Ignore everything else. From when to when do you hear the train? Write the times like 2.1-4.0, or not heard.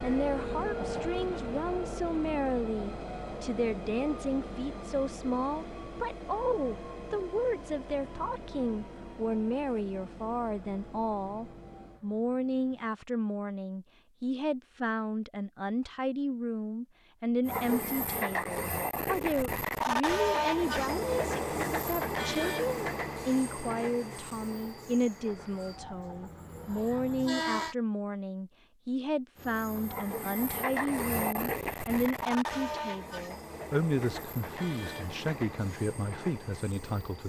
0.0-12.9, 17.4-27.8, 29.4-37.2.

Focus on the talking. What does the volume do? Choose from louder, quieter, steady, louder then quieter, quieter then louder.
steady.